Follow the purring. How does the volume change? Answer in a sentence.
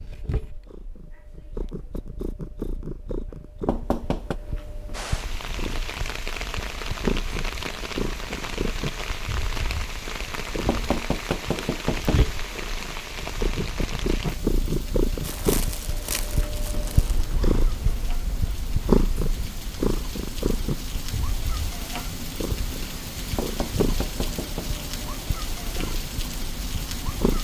The loudness of the purring goes up, then down.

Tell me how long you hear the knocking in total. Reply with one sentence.
The knocking can be heard for 4 seconds in total.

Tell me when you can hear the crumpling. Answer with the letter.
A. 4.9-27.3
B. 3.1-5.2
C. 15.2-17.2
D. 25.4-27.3
C.